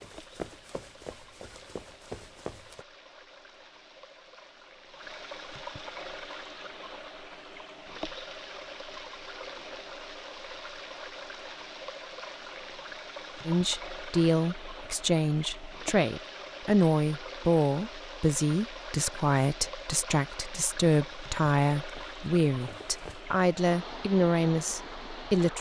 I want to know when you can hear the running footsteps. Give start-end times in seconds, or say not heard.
0.0-2.9, 21.8-23.2.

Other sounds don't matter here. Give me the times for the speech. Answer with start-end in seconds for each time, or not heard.
13.4-25.5.